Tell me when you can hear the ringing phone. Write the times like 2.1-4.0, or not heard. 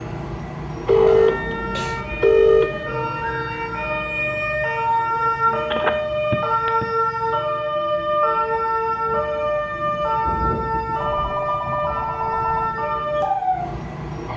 0.8-2.7, 5.7-6.8, 10.9-12.7.